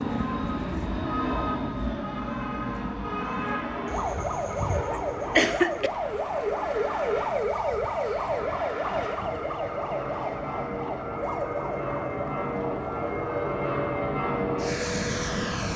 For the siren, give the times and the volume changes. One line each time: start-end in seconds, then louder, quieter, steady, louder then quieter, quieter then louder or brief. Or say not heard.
0.1-15.7 louder then quieter.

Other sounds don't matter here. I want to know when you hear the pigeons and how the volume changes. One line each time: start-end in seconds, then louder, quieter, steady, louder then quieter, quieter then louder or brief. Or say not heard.
not heard.